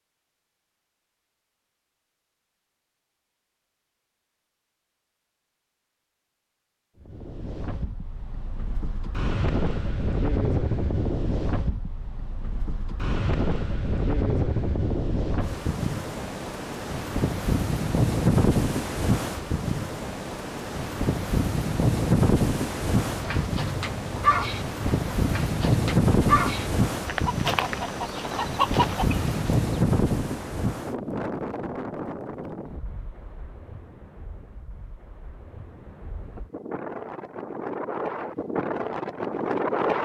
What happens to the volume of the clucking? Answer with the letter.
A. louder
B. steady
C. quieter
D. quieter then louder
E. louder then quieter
D.